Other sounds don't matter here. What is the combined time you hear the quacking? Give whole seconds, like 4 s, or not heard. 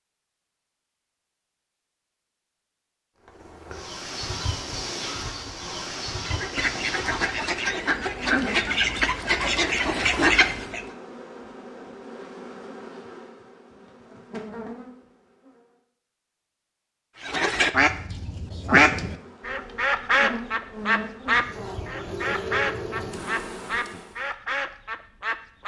13 s.